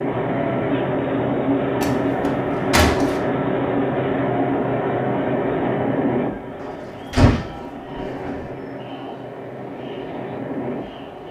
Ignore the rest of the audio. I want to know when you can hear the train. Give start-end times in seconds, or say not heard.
0.0-11.2.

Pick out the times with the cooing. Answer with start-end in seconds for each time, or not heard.
not heard.